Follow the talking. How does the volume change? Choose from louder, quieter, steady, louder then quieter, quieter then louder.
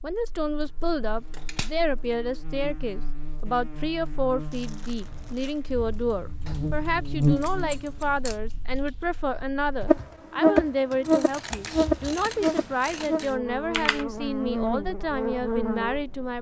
steady.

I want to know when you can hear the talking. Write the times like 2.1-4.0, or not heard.
0.0-16.3.